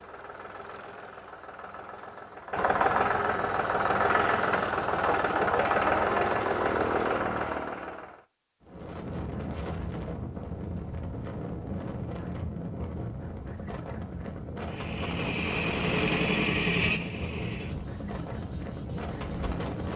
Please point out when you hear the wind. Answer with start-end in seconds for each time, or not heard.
8.6-19.9.